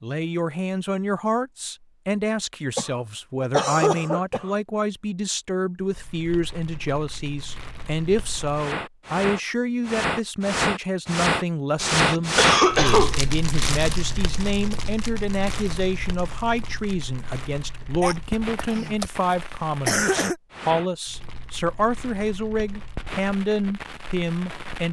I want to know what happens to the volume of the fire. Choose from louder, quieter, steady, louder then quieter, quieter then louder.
louder then quieter.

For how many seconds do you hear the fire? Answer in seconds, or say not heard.
19 s.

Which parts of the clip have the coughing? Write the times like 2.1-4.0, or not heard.
2.8-4.5, 11.9-13.2, 18.0-19.1, 19.9-20.4.